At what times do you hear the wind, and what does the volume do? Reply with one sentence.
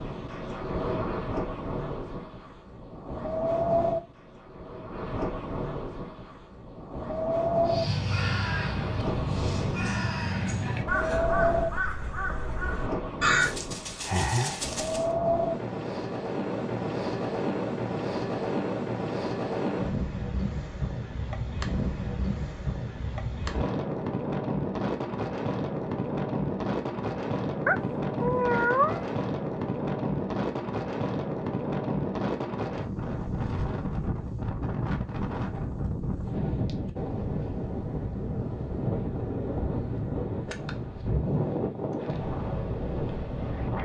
You can hear the wind from 0.0 to 43.8 s, at a steady volume.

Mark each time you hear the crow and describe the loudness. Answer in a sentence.
You can hear the crow from 7.7 to 15.1 s, at a steady volume.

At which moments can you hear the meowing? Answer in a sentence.
You can hear the meowing from 27.6 to 29.1 s.